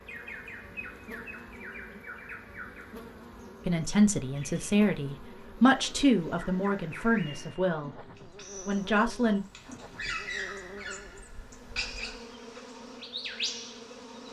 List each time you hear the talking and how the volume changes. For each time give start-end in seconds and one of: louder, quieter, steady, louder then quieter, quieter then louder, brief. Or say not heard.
3.6-8.0 louder then quieter
8.7-9.4 brief.